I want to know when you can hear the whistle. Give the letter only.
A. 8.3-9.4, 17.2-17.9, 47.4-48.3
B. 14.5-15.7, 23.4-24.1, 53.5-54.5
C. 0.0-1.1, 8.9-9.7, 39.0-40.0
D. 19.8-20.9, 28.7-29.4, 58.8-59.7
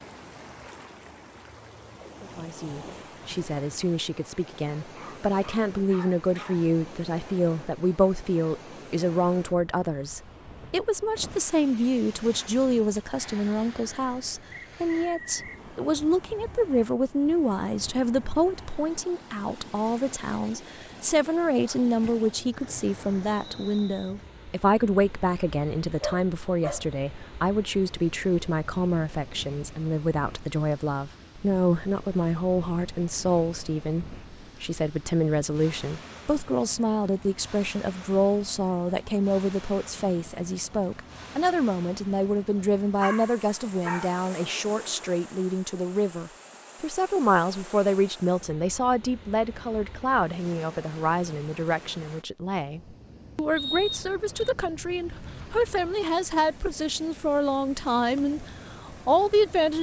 B.